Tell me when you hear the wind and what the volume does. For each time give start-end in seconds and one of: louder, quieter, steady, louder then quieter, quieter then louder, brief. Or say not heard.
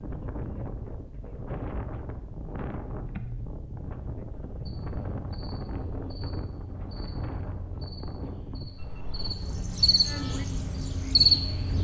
0.0-11.7 steady.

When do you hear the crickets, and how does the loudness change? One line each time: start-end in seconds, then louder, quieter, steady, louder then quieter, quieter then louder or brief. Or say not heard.
4.8-11.7 louder.